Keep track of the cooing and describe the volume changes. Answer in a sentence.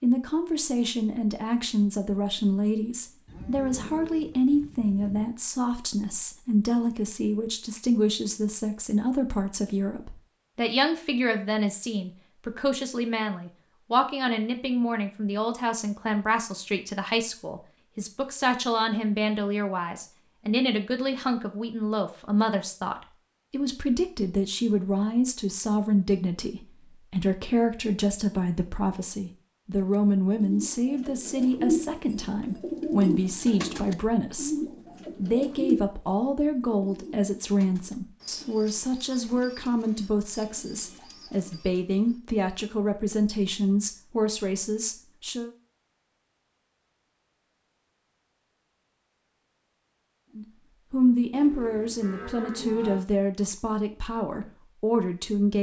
The volume of the cooing goes down.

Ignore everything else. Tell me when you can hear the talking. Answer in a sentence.
The talking can be heard from 0.0 to 45.5 s and from 50.4 to 55.5 s.